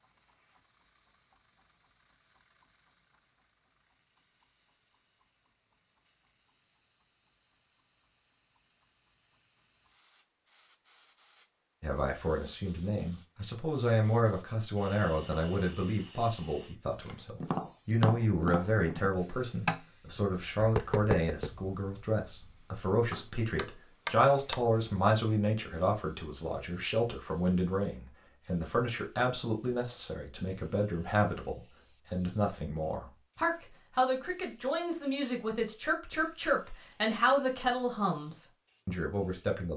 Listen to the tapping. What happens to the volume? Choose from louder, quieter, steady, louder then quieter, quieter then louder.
quieter then louder.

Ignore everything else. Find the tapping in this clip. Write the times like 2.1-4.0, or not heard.
17.0-24.6.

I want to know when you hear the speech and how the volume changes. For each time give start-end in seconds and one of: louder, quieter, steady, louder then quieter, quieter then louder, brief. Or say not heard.
11.8-39.7 steady.